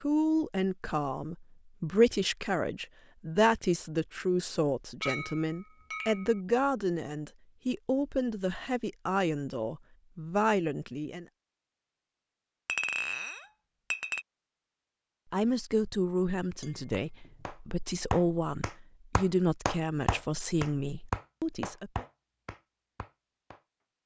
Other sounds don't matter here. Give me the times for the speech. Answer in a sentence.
The speech can be heard from 0.0 to 11.2 s and from 15.3 to 22.1 s.